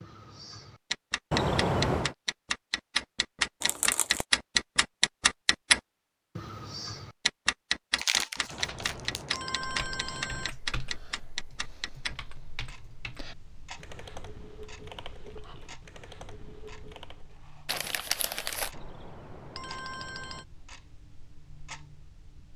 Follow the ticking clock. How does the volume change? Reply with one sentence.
The volume of the ticking clock goes down.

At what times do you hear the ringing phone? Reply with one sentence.
You can hear the ringing phone from 1.3 to 2.1 s, from 8.5 to 10.5 s and from 18.7 to 20.4 s.